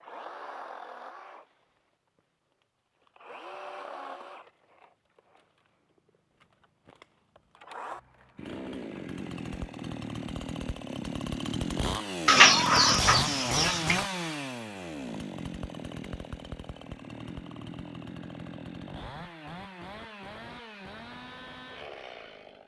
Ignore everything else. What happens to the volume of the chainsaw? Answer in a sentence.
The loudness of the chainsaw goes up, then down.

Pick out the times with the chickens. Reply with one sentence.
The chickens can be heard from 12.2 to 14.0 s.